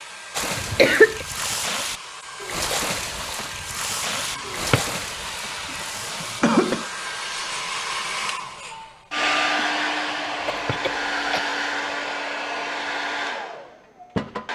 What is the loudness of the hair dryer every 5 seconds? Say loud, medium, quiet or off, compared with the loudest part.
medium, loud, loud.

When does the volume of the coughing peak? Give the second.
1 s.